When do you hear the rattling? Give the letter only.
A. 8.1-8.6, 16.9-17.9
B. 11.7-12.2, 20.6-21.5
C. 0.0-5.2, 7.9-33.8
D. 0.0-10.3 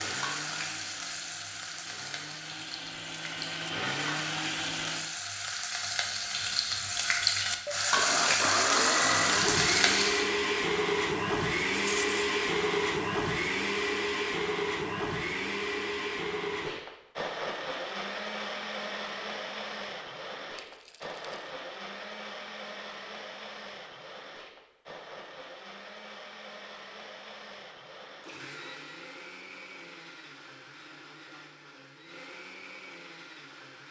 B.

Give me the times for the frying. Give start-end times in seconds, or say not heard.
0.0-10.3.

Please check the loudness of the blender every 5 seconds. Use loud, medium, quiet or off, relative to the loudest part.
medium, loud, loud, medium, quiet, quiet, quiet.